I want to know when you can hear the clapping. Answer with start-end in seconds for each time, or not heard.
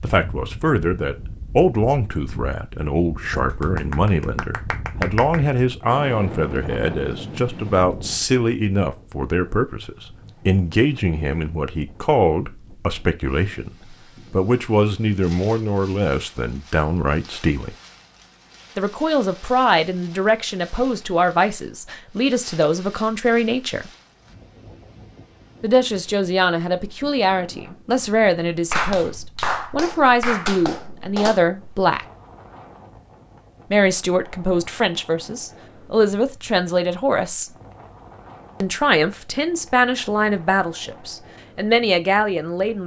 3.6-5.4, 28.6-31.4.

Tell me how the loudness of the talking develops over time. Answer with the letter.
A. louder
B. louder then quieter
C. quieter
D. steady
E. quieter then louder
D.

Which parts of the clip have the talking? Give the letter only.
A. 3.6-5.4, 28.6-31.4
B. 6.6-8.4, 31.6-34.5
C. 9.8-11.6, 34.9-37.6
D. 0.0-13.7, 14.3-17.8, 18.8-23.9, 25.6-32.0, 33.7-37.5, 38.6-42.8
D.